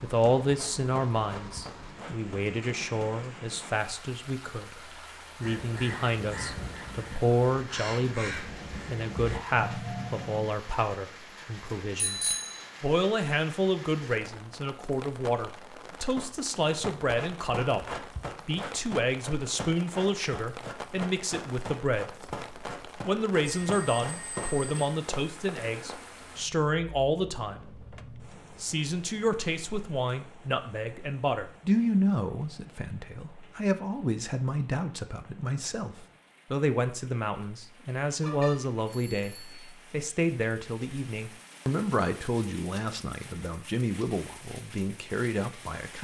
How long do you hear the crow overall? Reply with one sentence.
The crow can be heard for 5 seconds in total.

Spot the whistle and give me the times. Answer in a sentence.
You can't hear the whistle here.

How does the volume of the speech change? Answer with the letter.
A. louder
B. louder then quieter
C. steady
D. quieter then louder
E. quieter
C.